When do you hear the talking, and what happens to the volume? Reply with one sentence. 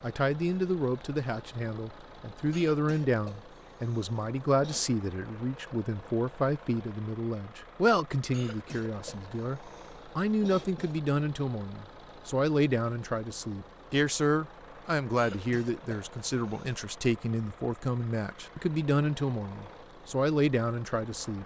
You can hear the talking from 0.0 to 21.4 s, at a steady volume.